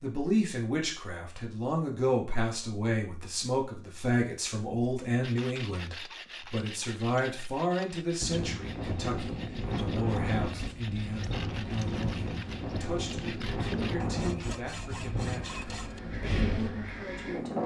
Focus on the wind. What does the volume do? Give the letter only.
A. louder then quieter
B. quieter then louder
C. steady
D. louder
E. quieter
C.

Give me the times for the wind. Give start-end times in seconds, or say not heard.
8.2-17.6.